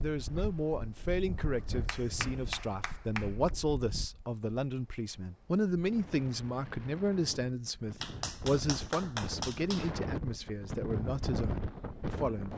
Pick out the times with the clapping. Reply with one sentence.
You can hear the clapping from 1.7 to 3.5 s and from 8.0 to 9.9 s.